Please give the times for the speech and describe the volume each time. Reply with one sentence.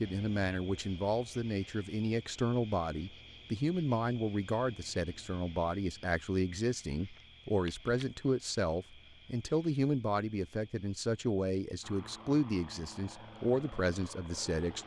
The speech can be heard from 0.0 to 14.8 s, at a steady volume.